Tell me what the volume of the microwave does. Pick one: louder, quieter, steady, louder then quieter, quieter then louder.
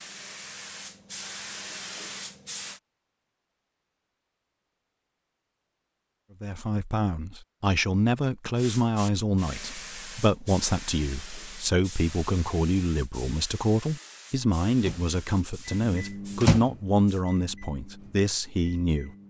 louder then quieter.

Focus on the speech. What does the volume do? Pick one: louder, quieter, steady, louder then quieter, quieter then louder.
steady.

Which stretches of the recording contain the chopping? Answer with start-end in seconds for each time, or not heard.
not heard.